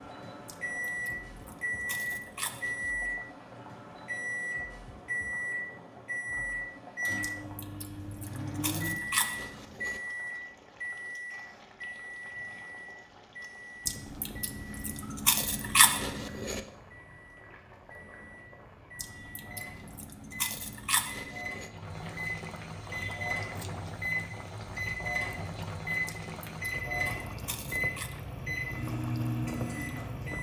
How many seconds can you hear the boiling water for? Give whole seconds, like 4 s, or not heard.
30 s.